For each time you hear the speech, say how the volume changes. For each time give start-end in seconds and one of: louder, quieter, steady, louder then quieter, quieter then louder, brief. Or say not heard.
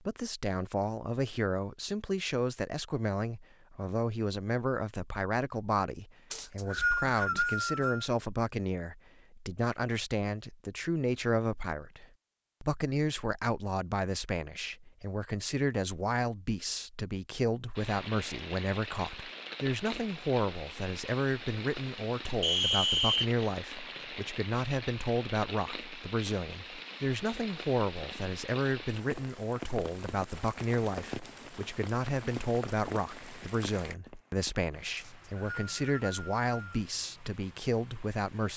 0.0-38.5 steady.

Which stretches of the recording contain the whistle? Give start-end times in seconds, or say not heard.
6.3-8.1, 22.4-23.3, 35.0-36.9.